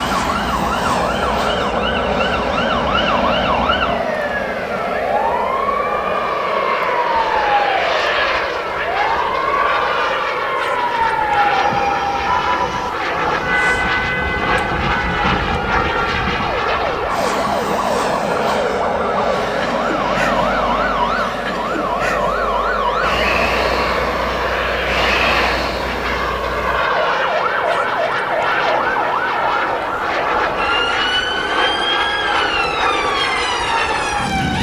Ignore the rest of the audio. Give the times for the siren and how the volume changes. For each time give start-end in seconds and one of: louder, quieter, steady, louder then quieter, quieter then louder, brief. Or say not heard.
0.0-34.5 steady.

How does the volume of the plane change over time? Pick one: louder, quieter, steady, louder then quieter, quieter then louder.
steady.